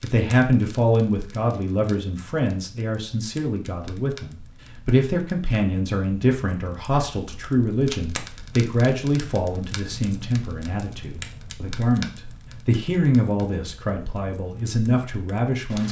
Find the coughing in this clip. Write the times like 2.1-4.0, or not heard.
not heard.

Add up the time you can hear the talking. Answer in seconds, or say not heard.
16 s.